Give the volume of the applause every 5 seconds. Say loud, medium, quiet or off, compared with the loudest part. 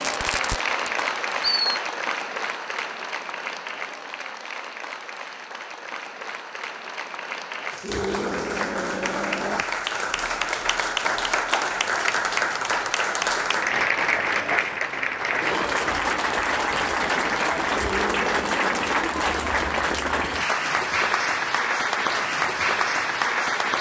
medium, medium, loud, loud, loud.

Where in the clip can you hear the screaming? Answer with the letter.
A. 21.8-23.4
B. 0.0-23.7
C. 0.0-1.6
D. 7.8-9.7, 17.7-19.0
D.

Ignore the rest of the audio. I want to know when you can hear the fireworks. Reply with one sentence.
You can hear the fireworks from 0.0 to 1.6 s.